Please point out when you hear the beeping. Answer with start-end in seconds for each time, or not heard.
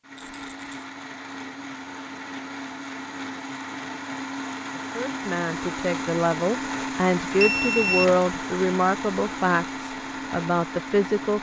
7.3-8.2.